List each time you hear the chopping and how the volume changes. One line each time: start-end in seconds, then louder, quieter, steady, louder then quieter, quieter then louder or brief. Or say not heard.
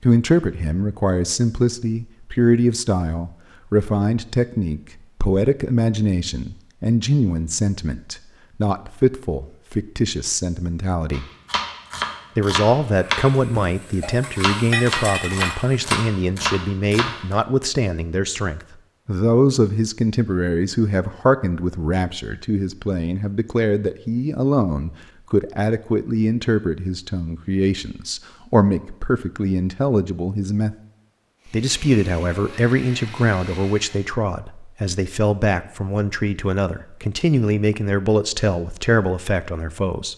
11.1-17.4 steady.